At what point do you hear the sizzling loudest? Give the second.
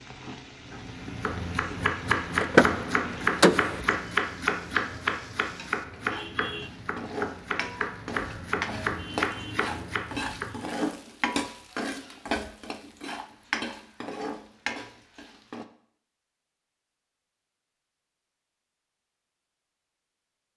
11 s.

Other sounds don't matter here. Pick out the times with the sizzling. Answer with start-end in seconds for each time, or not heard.
0.0-15.7.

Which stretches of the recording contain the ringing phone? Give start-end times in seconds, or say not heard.
not heard.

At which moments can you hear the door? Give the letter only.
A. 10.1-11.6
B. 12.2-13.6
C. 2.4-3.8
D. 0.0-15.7
C.